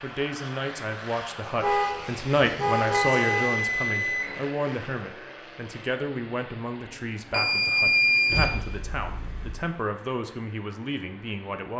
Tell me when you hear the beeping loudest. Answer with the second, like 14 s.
8 s.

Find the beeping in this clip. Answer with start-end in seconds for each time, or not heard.
3.1-4.3, 7.3-8.6.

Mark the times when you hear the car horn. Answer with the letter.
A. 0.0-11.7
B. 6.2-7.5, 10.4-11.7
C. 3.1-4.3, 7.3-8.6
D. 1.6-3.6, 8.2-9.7
D.